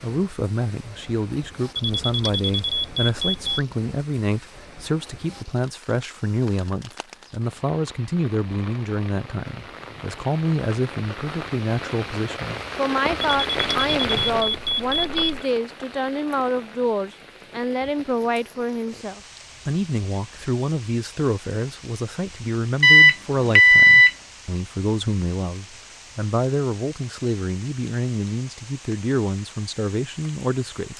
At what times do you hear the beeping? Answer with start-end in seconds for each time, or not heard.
1.8-3.6, 13.2-15.4, 22.8-24.1.